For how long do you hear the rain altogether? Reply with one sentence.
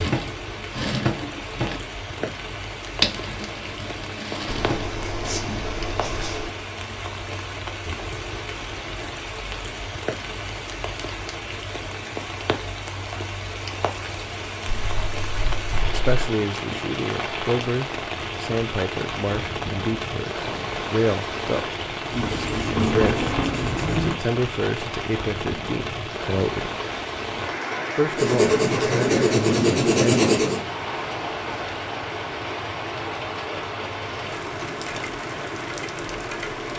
The rain can be heard for 37 seconds in total.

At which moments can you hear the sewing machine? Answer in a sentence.
You can hear the sewing machine from 0.0 to 5.8 s.